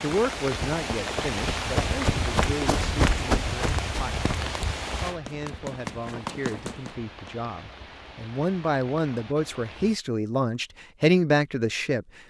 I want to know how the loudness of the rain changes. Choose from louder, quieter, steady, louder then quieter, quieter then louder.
quieter.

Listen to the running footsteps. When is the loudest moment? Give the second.
3 s.